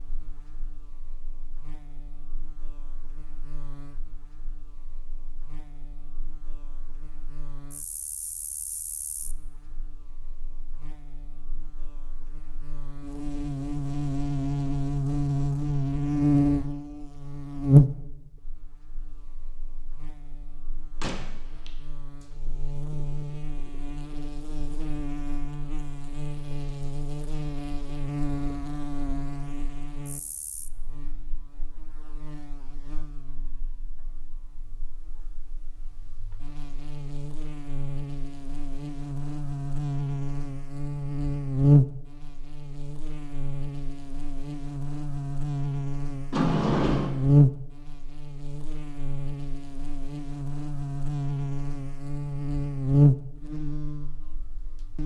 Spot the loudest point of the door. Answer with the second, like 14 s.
47 s.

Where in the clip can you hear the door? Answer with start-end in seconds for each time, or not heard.
21.0-21.7, 46.3-47.1.